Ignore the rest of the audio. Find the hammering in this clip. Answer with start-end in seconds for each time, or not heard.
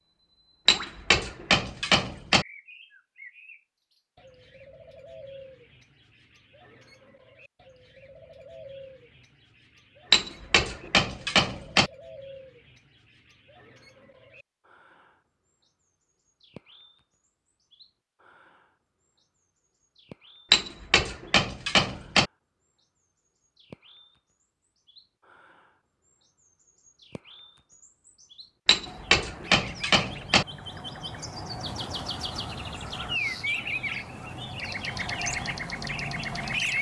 0.7-2.5, 10.1-11.9, 20.5-22.3, 28.6-30.4.